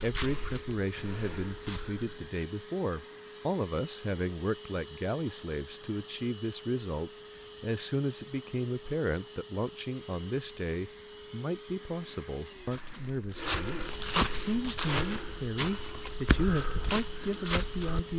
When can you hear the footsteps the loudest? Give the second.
14 s.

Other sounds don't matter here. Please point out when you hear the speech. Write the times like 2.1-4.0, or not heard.
0.0-18.1.